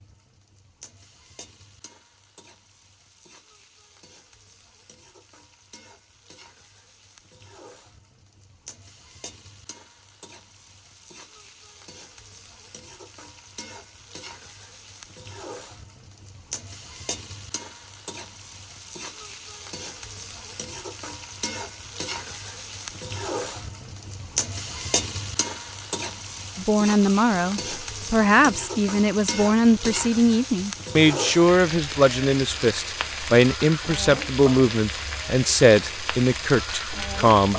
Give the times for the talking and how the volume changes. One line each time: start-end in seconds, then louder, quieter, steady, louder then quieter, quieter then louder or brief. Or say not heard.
26.6-37.5 steady.